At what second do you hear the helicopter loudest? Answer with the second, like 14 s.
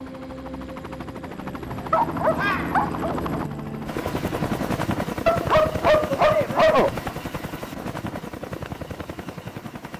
5 s.